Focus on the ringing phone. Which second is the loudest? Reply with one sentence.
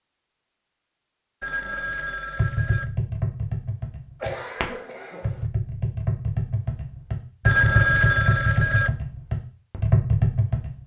The volume of the ringing phone peaks at 8 seconds.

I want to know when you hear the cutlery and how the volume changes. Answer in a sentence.
You can't hear the cutlery here.